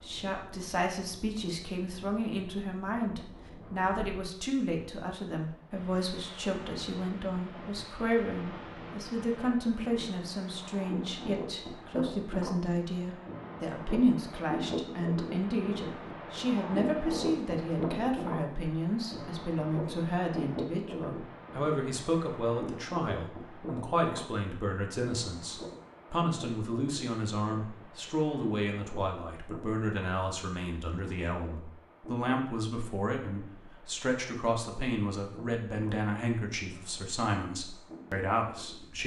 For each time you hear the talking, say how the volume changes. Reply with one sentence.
You can hear the talking from 0.0 to 39.0 s, at a steady volume.